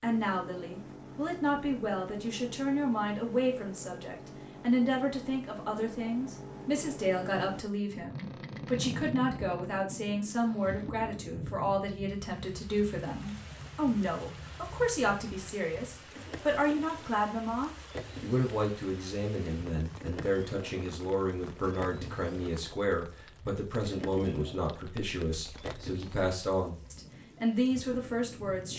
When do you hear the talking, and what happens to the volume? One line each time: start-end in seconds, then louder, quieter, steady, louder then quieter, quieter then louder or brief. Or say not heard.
0.0-28.7 steady.